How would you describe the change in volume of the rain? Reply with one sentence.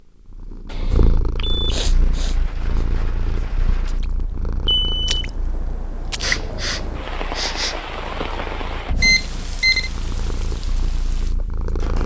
The loudness of the rain goes up, then down.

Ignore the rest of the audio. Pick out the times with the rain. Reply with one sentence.
The rain can be heard from 1.8 to 12.0 s.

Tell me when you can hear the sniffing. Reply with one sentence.
The sniffing can be heard from 1.6 to 2.9 s and from 6.2 to 7.8 s.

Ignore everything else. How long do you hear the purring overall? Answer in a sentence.
The purring can be heard for 12 seconds in total.